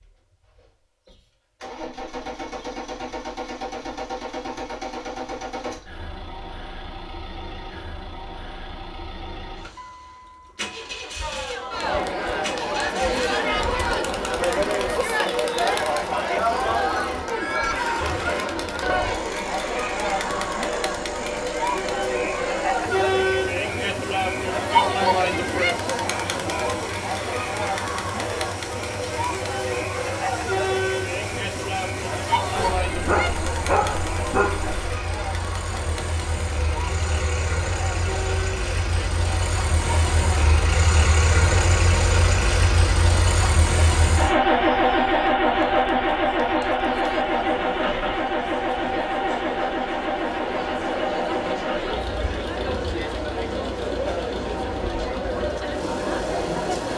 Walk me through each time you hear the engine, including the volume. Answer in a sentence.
The engine can be heard from 0.0 to 56.9 s, getting louder.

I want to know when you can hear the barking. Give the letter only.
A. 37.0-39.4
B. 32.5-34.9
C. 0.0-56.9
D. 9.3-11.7
B.